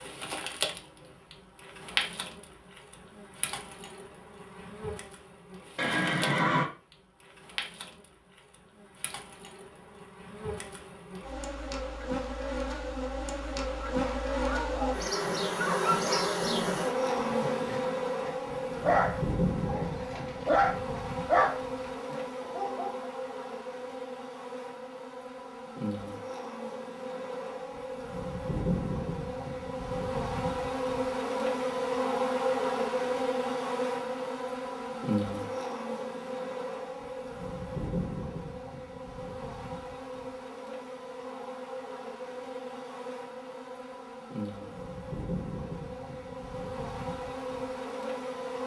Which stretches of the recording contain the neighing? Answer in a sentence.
The neighing can be heard from 5.8 to 6.7 s.